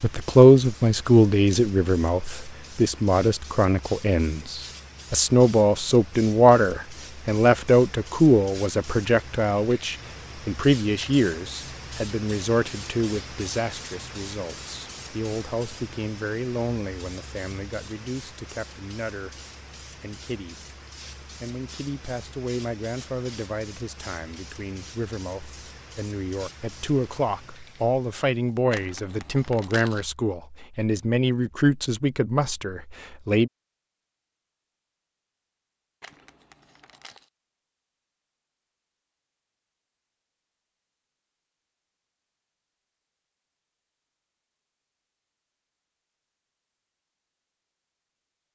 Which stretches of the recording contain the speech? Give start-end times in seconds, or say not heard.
0.0-19.4, 20.0-20.6, 21.4-33.5.